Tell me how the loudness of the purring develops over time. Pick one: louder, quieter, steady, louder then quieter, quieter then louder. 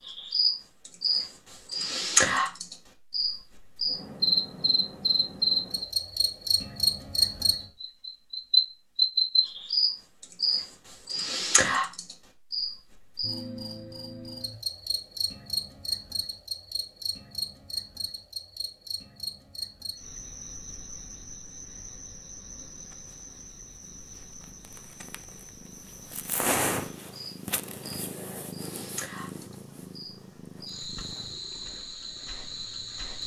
louder then quieter.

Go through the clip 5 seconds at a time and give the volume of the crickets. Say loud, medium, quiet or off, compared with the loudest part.
loud, loud, medium, medium, quiet, quiet, quiet.